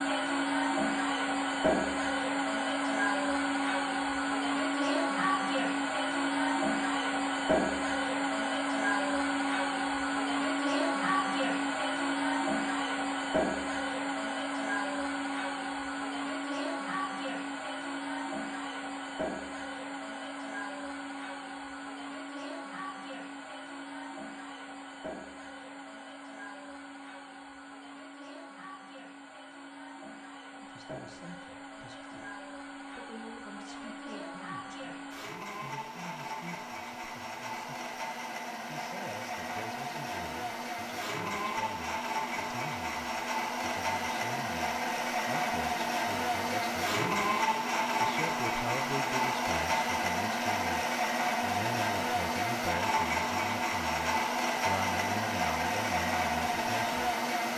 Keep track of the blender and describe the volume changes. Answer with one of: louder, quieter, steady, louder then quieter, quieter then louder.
quieter then louder.